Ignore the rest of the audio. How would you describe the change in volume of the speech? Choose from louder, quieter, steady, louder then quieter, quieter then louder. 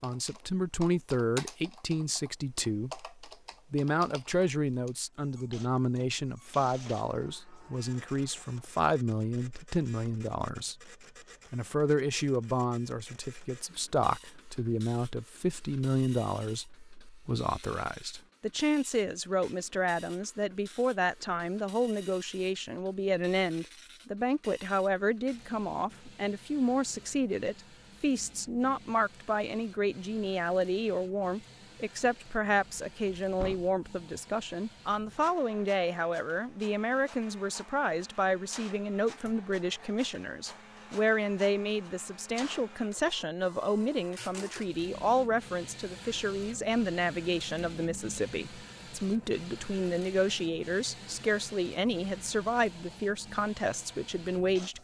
steady.